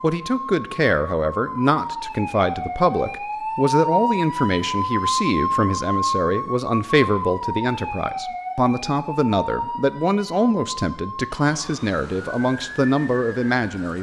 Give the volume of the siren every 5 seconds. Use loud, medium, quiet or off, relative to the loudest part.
loud, loud, medium.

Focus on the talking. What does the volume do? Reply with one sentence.
The volume of the talking stays about the same.